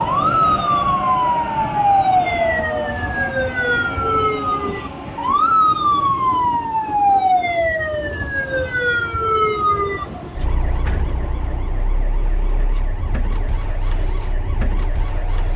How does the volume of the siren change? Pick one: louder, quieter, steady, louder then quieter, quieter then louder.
quieter.